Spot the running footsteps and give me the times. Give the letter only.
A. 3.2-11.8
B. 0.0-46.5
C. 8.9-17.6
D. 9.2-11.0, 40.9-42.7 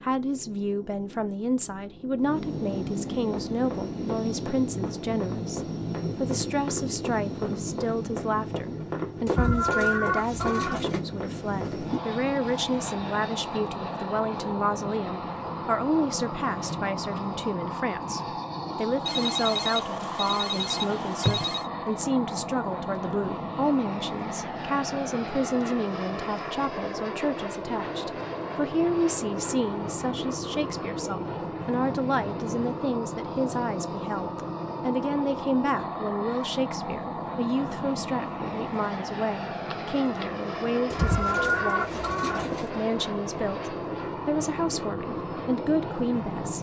A.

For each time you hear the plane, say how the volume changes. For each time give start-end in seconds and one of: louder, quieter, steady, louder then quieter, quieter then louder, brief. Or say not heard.
0.0-46.5 steady.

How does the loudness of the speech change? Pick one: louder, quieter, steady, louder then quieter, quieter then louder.
steady.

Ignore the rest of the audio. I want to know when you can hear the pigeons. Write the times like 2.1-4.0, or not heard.
9.2-11.0, 40.9-42.7.